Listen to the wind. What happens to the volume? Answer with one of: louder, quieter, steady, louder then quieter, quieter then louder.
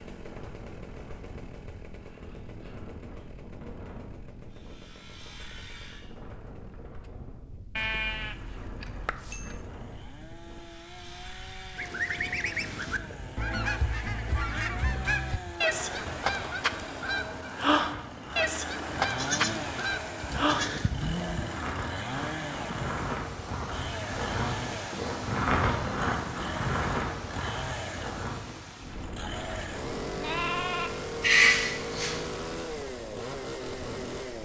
louder then quieter.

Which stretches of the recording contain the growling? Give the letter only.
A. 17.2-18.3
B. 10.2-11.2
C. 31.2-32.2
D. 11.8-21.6
C.